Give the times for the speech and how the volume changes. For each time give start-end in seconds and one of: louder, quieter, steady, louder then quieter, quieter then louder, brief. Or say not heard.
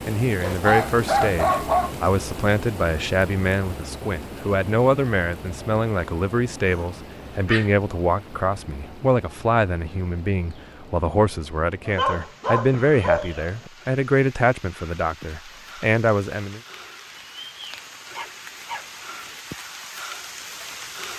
0.1-16.6 steady.